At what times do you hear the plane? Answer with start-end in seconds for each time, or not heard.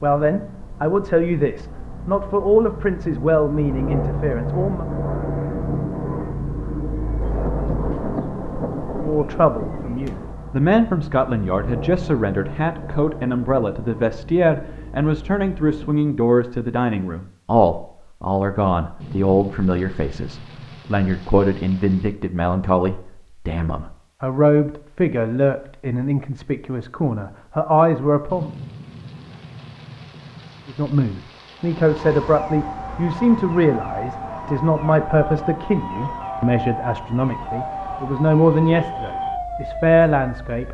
0.0-16.1.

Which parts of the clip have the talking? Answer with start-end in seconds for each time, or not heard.
0.0-4.8, 9.0-28.5, 30.6-40.6.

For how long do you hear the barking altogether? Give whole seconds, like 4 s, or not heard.
not heard.